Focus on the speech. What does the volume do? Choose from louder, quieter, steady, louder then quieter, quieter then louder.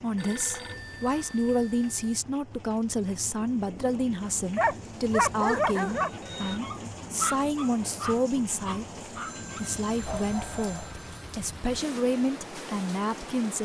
steady.